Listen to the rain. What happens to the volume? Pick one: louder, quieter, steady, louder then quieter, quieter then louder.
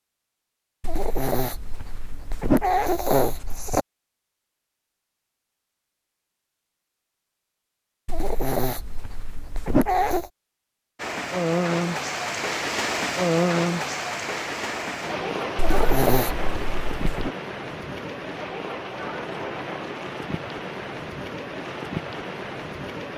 quieter.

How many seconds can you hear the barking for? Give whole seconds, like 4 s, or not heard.
7 s.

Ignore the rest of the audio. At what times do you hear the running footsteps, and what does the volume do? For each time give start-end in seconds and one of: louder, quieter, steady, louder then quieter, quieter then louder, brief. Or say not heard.
not heard.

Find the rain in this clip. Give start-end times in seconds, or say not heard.
10.9-23.1.